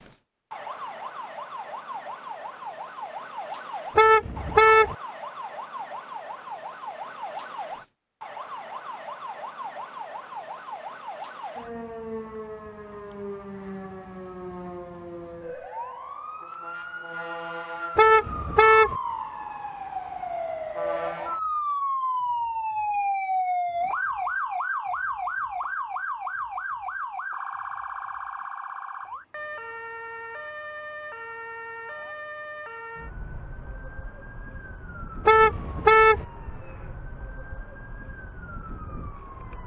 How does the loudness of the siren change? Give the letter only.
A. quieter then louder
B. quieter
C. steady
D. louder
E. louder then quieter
E.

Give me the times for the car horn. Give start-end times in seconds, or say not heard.
4.0-5.0, 17.9-18.9, 35.2-36.2.